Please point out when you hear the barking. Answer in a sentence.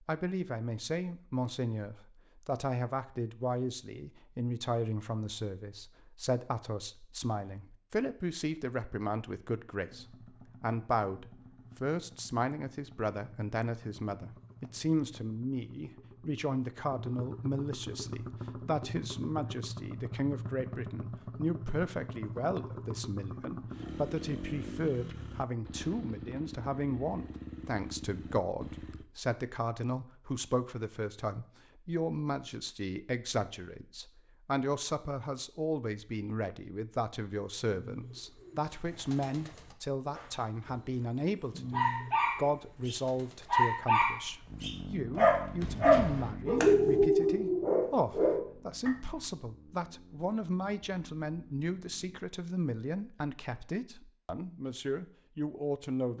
You can hear the barking from 41.7 to 48.9 s.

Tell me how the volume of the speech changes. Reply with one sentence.
The volume of the speech stays about the same.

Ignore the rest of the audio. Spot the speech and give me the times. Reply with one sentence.
You can hear the speech from 0.1 to 56.1 s.